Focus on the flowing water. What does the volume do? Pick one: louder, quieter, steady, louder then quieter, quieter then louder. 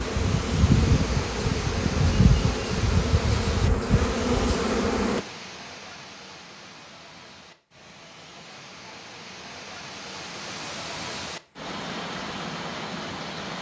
quieter then louder.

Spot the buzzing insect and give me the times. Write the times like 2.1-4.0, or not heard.
0.0-5.2.